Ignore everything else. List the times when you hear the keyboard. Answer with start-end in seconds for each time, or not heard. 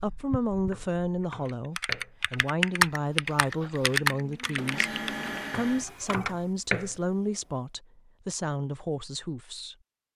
0.0-5.3.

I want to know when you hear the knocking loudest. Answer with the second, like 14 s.
7 s.